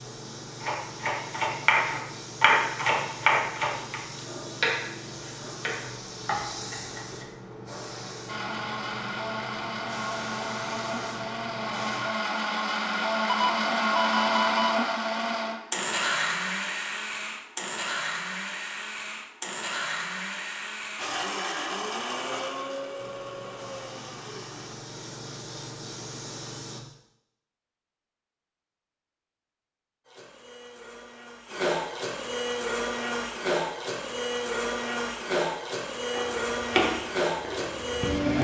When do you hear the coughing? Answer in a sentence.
You can't hear the coughing here.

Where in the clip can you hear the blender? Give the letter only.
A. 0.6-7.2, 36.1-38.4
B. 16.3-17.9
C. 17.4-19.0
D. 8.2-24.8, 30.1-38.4
D.